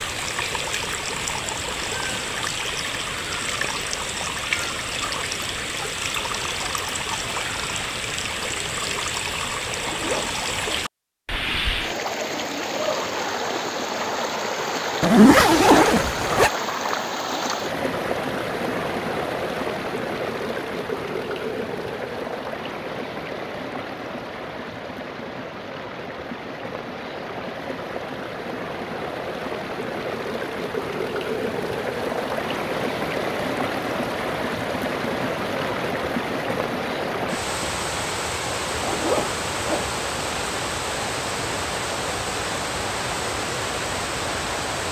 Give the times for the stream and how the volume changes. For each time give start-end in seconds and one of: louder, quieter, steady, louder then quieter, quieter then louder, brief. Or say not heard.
0.0-44.8 steady.